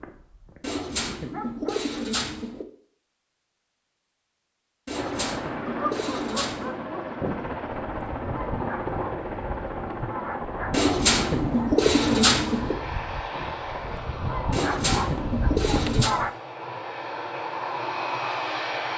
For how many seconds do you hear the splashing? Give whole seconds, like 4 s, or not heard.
not heard.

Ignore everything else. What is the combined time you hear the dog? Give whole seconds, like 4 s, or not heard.
13 s.